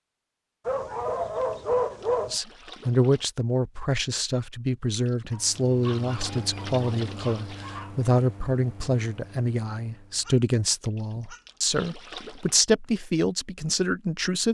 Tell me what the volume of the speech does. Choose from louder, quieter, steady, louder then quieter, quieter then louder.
steady.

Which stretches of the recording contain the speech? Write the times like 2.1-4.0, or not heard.
2.2-14.4.